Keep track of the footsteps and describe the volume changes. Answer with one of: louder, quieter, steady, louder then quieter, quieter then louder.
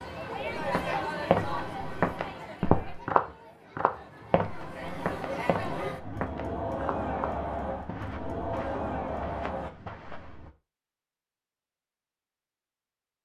quieter.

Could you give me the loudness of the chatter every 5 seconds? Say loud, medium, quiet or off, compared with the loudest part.
loud, loud, off.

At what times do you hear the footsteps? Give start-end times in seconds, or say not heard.
0.6-10.5.